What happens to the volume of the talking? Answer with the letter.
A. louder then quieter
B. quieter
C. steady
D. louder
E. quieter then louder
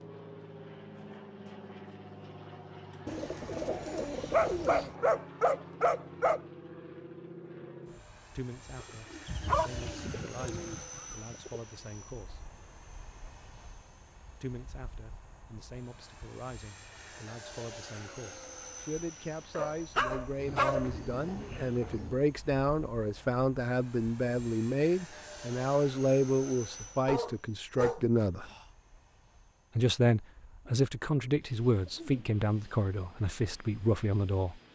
D.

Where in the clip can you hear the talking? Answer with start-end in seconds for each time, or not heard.
8.3-12.4, 14.4-28.4, 29.8-34.5.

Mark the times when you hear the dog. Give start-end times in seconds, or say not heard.
4.3-6.4, 9.2-10.8, 19.6-20.9, 27.1-28.6.